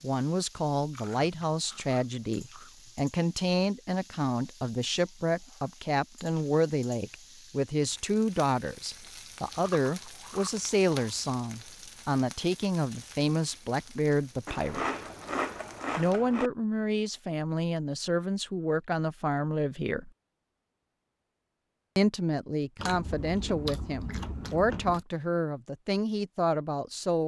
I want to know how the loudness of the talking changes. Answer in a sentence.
The loudness of the talking stays about the same.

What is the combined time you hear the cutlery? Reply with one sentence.
The cutlery can't be heard in this clip.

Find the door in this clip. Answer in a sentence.
The door can't be heard in this clip.